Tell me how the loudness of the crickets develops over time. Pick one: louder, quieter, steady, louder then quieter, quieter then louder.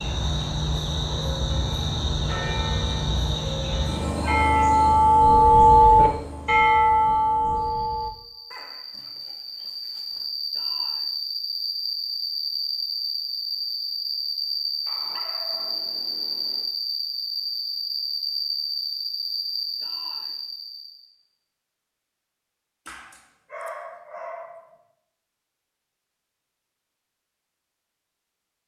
quieter then louder.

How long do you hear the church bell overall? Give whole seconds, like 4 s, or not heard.
7 s.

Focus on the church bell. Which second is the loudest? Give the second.
6 s.